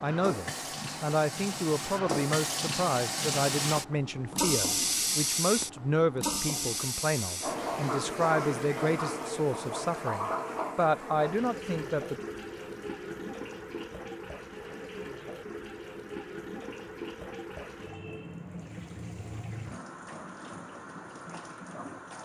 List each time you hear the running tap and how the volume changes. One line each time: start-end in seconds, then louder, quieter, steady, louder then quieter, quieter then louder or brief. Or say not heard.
0.0-22.2 quieter.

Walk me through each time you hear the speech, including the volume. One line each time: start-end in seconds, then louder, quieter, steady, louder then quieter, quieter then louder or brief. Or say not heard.
0.0-12.2 steady.